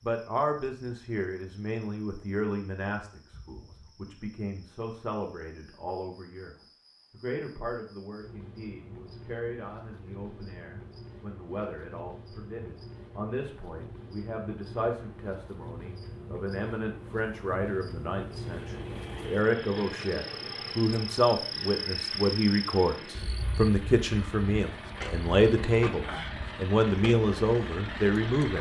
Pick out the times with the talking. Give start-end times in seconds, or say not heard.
0.1-28.5.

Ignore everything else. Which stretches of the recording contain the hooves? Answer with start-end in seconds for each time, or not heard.
not heard.